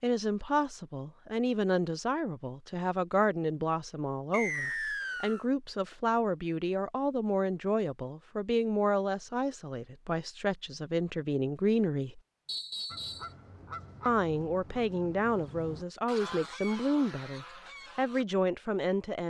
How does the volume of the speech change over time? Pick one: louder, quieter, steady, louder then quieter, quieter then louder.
steady.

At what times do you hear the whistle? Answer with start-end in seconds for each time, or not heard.
4.3-5.5, 12.4-13.3.